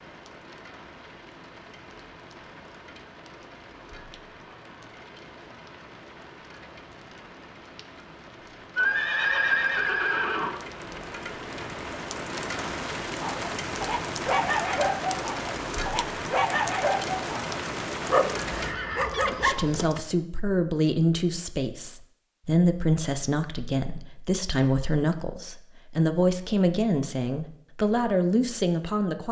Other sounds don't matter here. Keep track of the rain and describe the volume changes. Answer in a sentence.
The volume of the rain goes up.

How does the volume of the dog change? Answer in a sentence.
The volume of the dog stays about the same.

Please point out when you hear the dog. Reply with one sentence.
The dog can be heard from 13.2 to 20.1 s.